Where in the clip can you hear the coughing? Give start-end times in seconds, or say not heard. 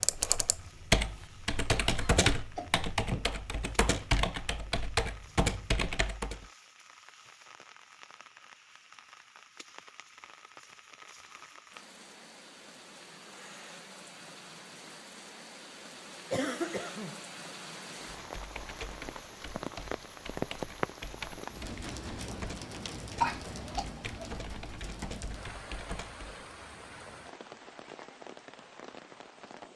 1.9-3.3, 16.3-17.2, 23.2-23.9.